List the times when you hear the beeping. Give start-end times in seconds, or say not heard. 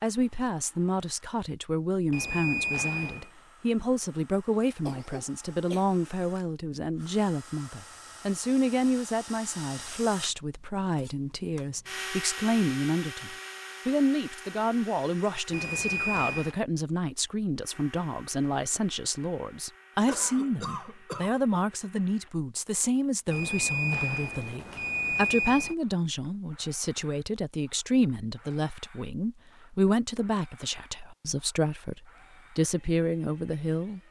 2.1-3.3, 15.5-16.6, 23.3-25.8.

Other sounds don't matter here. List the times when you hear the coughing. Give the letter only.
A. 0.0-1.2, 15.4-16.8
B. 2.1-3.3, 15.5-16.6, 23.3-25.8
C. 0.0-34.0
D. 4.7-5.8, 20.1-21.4
D.